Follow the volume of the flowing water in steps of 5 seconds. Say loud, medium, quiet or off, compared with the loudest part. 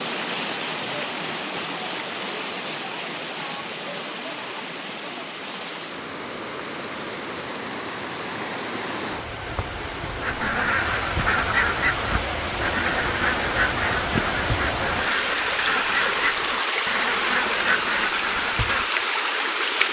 medium, medium, loud, loud.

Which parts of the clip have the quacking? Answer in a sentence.
You can hear the quacking from 10.2 to 18.9 s.